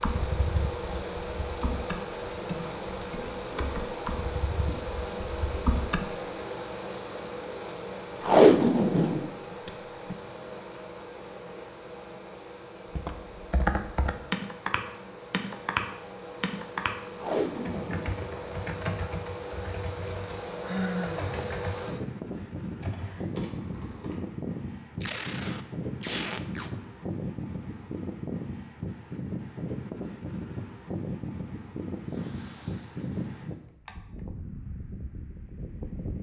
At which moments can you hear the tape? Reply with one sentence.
You can hear the tape from 8.2 to 10.2 s, from 17.1 to 18.6 s and from 25.0 to 26.7 s.